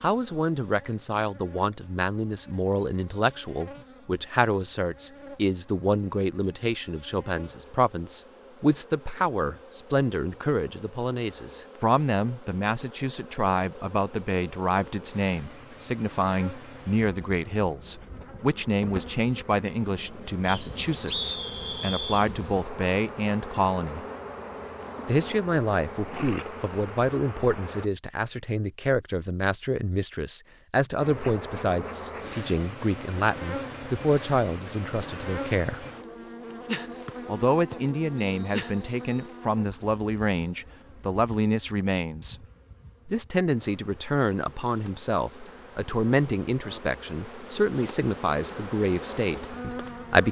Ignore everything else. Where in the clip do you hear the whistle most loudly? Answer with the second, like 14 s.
21 s.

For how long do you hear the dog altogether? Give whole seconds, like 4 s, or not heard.
not heard.